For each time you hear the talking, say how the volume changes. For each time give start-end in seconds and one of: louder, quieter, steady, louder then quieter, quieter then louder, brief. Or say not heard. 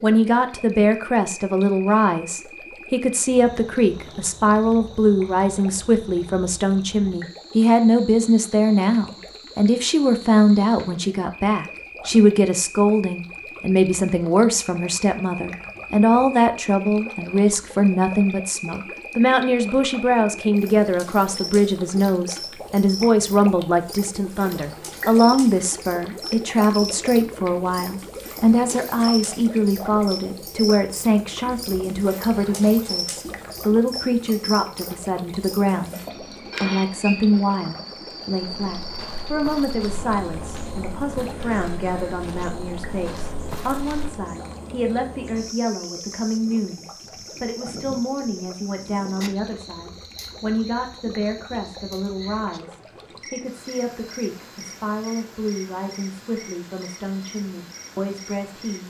0.0-58.8 quieter.